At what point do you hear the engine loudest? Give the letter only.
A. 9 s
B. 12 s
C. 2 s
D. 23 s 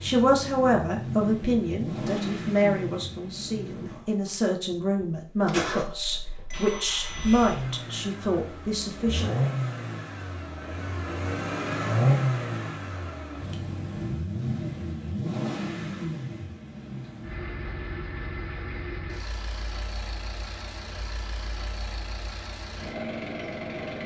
B.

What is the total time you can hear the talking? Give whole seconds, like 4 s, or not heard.
9 s.